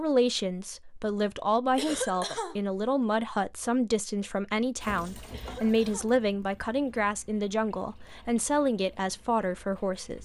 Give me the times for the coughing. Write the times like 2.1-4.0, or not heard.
1.8-2.6, 5.3-6.2.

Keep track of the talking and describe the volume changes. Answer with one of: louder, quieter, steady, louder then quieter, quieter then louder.
steady.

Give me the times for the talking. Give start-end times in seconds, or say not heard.
0.0-10.2.